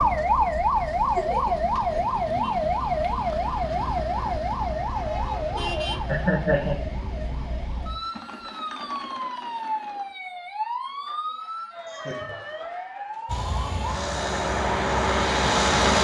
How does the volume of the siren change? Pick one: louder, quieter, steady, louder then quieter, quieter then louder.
quieter.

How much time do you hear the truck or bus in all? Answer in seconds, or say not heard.
3 s.